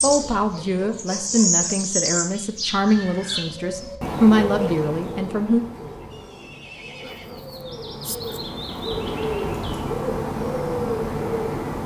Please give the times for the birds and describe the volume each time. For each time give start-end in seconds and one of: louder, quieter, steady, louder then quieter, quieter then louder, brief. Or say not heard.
0.0-11.8 quieter then louder.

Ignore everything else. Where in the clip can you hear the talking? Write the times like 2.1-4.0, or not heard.
0.0-5.6.